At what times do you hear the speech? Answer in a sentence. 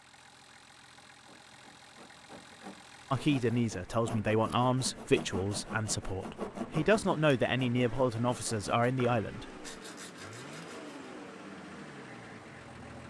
You can hear the speech from 3.1 to 9.7 s.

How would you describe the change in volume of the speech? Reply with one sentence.
The loudness of the speech stays about the same.